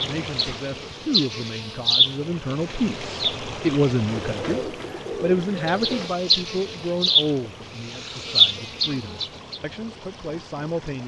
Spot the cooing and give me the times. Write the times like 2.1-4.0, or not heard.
4.0-6.1.